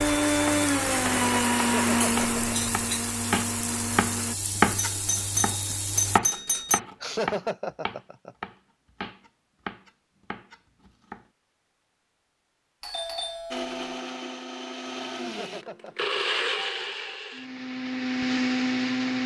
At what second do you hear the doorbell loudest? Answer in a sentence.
The loudest moment of the doorbell is at 6 seconds.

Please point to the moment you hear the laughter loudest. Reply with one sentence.
The volume of the laughter peaks at 7 seconds.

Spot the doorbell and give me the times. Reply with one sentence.
The doorbell can be heard from 4.8 to 6.8 s and from 12.8 to 13.8 s.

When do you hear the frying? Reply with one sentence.
You can hear the frying from 0.0 to 6.2 s.